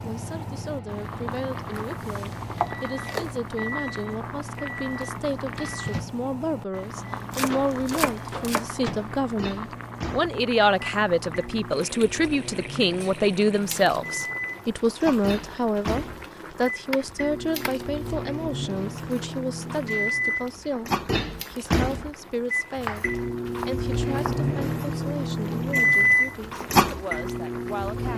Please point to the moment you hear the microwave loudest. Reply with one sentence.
The loudest moment of the microwave is at 26 seconds.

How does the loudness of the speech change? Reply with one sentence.
The volume of the speech goes up, then down.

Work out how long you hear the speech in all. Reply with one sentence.
You can hear the speech for 28 seconds altogether.